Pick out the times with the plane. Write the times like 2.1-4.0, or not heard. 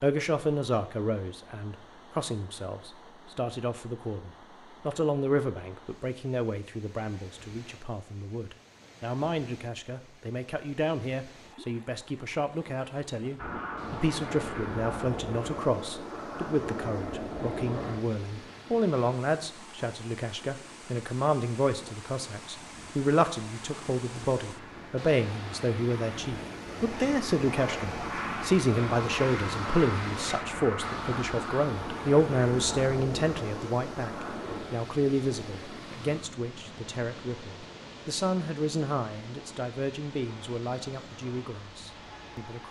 13.3-42.6.